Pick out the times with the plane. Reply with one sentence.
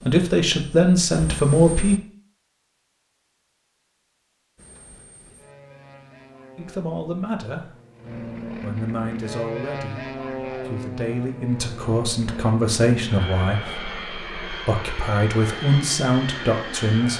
The plane can be heard from 0.0 to 2.0 s and from 4.5 to 17.1 s.